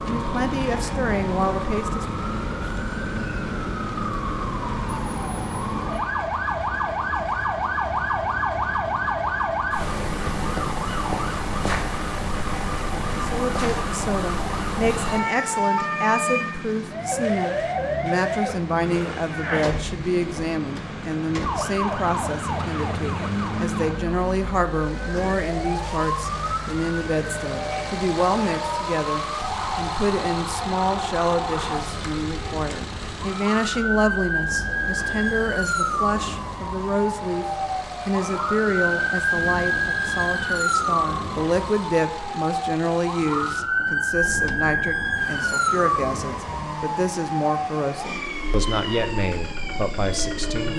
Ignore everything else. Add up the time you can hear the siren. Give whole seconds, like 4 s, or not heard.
51 s.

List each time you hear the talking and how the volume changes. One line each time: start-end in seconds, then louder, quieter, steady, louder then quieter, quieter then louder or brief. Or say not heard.
0.1-2.0 brief
13.2-50.7 steady.